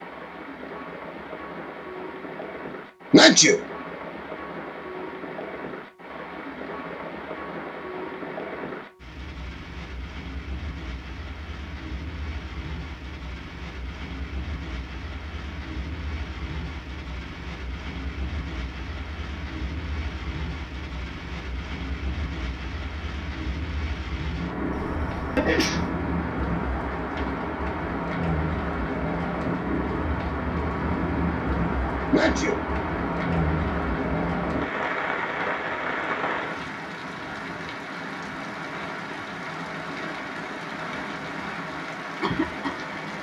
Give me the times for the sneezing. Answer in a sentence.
The sneezing can be heard from 3.1 to 3.6 s, from 24.8 to 25.9 s and from 32.1 to 32.6 s.